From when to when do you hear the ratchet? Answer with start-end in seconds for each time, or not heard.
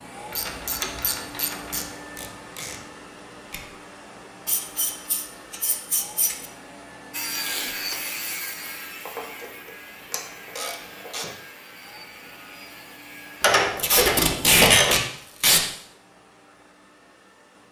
0.3-1.9, 4.5-6.5, 9.1-11.3, 13.4-14.9.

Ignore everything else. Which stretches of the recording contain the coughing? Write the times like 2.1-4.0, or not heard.
not heard.